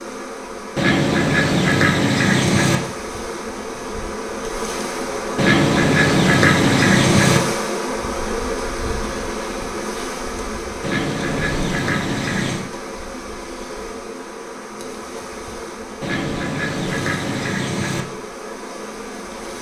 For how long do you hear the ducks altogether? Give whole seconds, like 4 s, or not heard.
8 s.